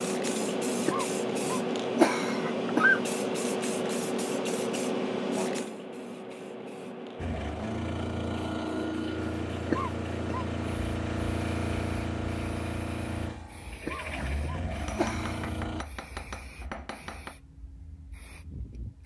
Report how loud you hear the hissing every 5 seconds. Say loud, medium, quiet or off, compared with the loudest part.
loud, medium, quiet, quiet.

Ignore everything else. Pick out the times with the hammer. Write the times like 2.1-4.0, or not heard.
14.7-17.4.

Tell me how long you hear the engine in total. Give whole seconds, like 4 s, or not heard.
9 s.